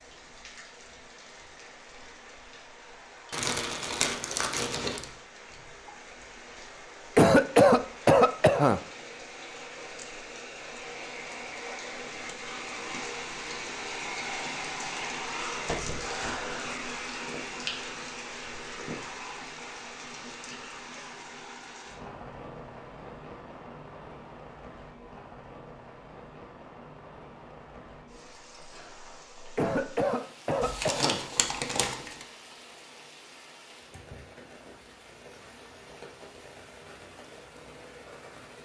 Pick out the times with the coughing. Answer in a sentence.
You can hear the coughing from 7.2 to 8.8 s and from 29.6 to 31.2 s.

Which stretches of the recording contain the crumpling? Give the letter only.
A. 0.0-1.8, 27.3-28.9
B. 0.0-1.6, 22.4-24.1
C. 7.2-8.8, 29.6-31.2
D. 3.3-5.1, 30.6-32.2
D.